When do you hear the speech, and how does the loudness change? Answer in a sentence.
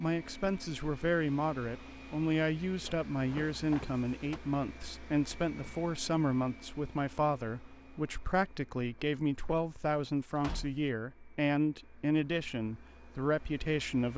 The speech can be heard from 0.0 to 14.1 s, at a steady volume.